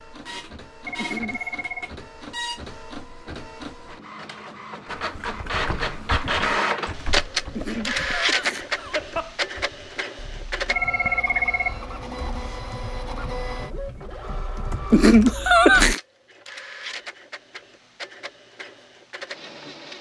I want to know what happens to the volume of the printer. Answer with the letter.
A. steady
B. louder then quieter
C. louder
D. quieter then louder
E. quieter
B.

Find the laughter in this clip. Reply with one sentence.
The laughter can be heard from 0.9 to 1.6 s, from 7.5 to 9.4 s and from 14.9 to 16.0 s.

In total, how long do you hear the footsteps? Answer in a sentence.
You can't hear the footsteps here.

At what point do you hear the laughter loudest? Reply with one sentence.
The loudest moment of the laughter is at 16 seconds.